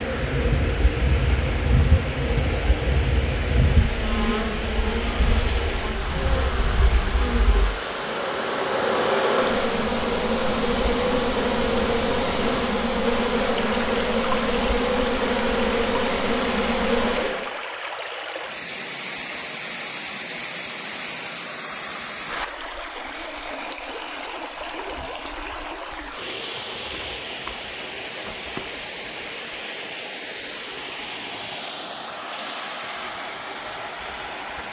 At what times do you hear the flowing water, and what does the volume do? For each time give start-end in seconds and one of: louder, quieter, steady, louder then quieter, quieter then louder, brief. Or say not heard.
0.0-34.6 steady.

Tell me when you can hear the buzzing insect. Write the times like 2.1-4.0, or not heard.
0.0-17.5.